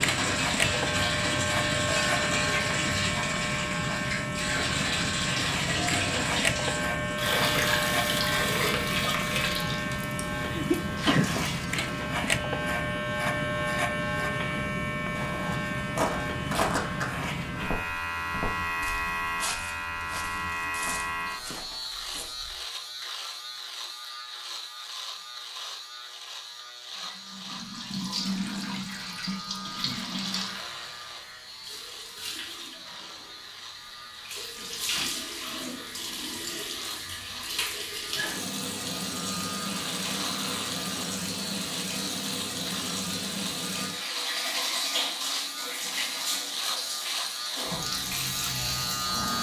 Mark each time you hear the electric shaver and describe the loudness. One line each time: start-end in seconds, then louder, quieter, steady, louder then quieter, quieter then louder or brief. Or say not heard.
0.0-49.3 quieter then louder.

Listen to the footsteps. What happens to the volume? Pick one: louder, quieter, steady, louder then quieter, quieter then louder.
quieter.